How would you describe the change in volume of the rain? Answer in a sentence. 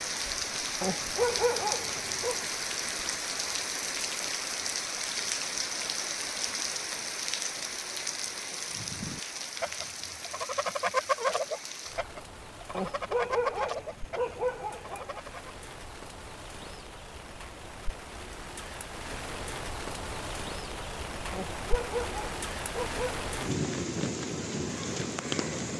The volume of the rain goes down, then up.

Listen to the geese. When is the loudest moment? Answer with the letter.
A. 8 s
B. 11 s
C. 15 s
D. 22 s
B.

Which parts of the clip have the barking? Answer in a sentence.
You can hear the barking from 0.8 to 2.4 s, from 12.7 to 15.2 s and from 21.3 to 23.2 s.